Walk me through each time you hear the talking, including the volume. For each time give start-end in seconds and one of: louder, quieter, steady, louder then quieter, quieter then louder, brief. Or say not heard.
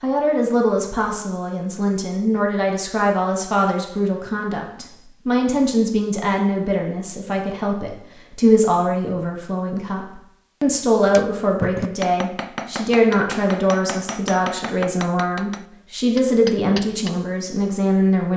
0.0-18.3 steady.